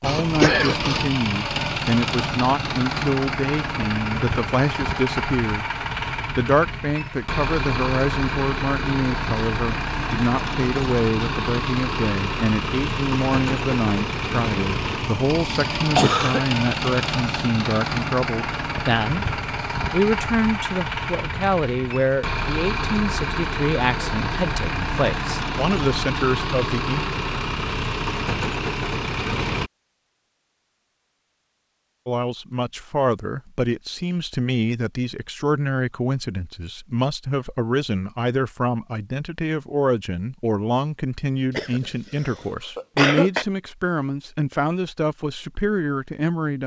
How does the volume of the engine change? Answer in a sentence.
The volume of the engine stays about the same.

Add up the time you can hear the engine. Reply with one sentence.
You can hear the engine for 30 seconds altogether.